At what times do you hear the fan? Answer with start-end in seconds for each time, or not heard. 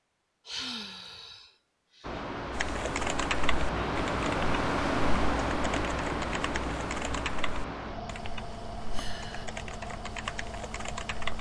2.0-11.3.